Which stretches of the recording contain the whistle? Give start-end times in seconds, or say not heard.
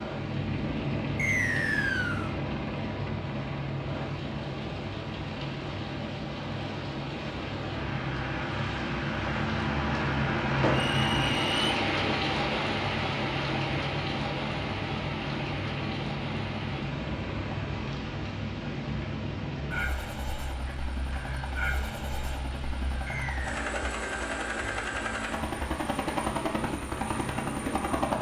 1.1-2.3, 10.7-11.7, 23.1-23.6.